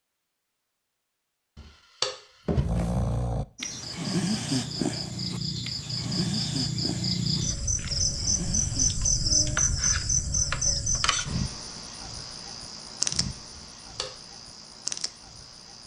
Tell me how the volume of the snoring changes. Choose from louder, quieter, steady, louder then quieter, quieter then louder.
quieter.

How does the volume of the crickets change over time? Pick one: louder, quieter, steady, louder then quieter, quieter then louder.
louder then quieter.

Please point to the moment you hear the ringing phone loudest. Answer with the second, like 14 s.
2 s.